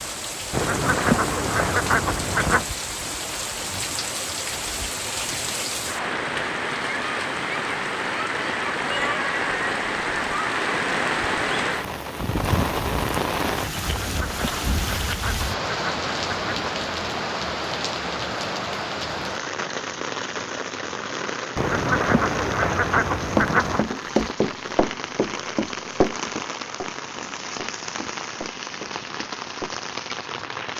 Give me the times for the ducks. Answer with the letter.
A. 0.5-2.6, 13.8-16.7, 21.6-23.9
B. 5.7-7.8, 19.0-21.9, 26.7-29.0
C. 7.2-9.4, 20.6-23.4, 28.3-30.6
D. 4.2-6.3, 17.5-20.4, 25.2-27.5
A.